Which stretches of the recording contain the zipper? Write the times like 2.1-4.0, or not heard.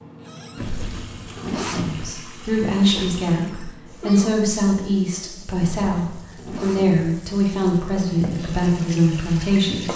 0.6-2.1, 5.6-7.1.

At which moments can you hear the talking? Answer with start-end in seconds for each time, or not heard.
1.7-9.9.